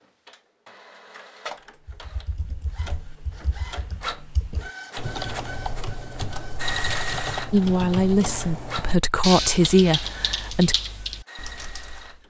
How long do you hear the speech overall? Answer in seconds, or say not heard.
3 s.